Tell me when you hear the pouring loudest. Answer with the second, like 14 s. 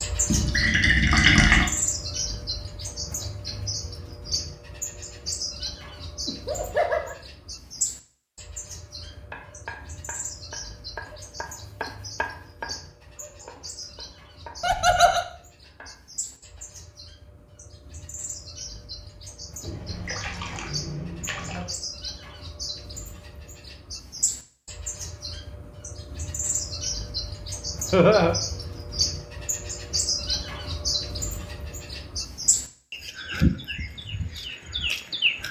1 s.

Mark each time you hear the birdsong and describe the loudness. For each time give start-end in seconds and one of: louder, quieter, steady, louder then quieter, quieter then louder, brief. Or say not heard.
0.0-35.4 quieter then louder.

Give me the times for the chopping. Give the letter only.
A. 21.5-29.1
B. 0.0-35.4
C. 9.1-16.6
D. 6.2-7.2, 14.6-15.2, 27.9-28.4
C.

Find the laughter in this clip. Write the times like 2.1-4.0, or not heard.
6.2-7.2, 14.6-15.2, 27.9-28.4.